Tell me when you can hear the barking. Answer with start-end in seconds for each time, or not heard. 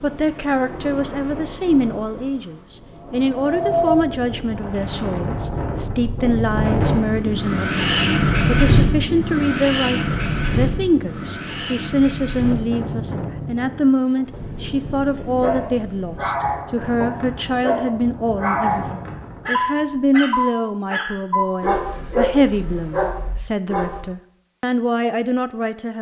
15.4-24.0.